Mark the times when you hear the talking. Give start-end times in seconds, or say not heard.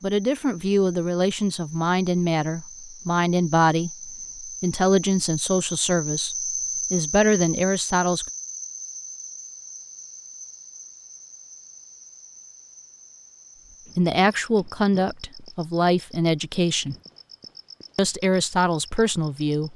0.0-8.2, 13.9-16.9, 17.9-19.7.